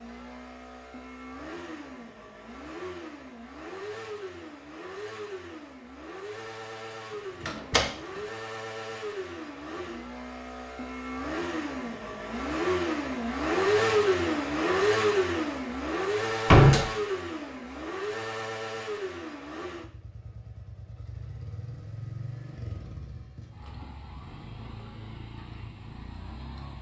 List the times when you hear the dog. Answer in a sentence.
The dog can't be heard in this clip.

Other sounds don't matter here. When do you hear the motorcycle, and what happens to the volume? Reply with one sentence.
You can hear the motorcycle from 0.0 to 26.7 s, getting louder then quieter.